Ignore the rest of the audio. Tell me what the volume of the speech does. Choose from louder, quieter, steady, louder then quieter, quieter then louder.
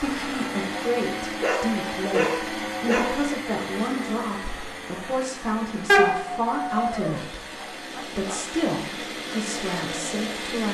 steady.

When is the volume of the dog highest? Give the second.
6 s.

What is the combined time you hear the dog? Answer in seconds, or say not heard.
4 s.